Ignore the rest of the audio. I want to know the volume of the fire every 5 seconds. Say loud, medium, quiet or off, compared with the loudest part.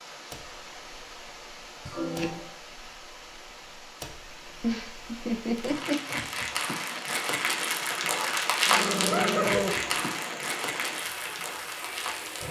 quiet, loud, medium.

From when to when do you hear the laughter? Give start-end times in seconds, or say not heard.
1.9-2.5, 4.6-6.2, 8.9-9.6.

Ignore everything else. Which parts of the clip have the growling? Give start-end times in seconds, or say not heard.
8.7-9.9.